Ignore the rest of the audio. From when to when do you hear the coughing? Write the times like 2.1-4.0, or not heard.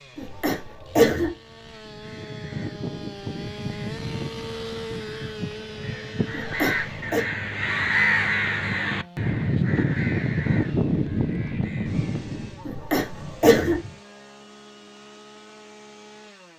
0.1-1.3, 6.3-7.2, 12.7-13.8.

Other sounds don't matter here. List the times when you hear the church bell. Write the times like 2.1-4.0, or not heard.
not heard.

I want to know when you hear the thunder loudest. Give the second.
11 s.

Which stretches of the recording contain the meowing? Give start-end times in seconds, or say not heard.
not heard.